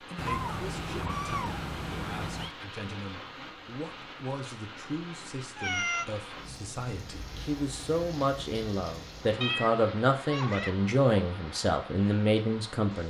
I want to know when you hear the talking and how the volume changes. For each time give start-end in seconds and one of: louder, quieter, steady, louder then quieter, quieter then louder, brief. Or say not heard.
0.0-13.0 louder.